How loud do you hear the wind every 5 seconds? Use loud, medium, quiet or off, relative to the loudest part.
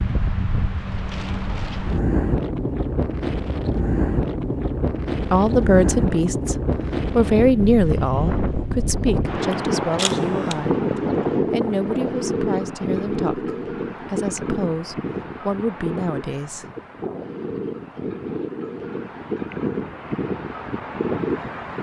loud, loud, loud, medium, loud.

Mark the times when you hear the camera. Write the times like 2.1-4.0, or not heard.
9.9-10.6.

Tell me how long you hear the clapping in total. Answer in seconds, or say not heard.
not heard.